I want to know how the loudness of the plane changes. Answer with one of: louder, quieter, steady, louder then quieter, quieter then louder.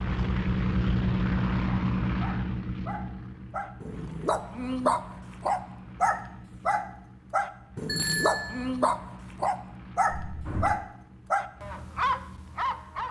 quieter.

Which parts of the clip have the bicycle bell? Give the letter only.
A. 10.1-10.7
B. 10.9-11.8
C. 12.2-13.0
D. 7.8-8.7
D.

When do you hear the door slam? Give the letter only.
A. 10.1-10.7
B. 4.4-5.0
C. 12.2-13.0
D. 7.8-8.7
A.